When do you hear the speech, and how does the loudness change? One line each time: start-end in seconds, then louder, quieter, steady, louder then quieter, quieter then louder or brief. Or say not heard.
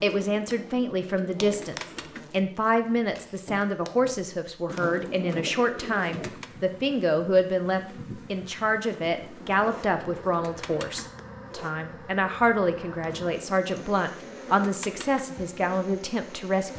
0.0-16.7 steady.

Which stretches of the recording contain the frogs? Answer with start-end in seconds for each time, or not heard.
not heard.